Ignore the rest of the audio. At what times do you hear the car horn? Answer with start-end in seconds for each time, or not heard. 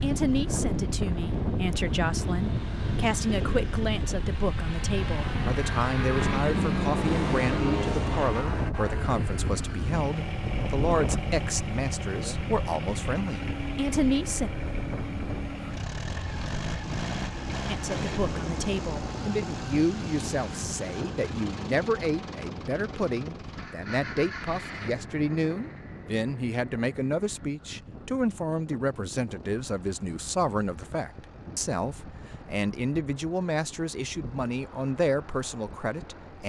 not heard.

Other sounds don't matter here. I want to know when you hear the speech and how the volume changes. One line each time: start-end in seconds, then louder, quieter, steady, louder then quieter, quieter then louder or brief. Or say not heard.
0.0-14.5 steady
17.6-36.4 steady.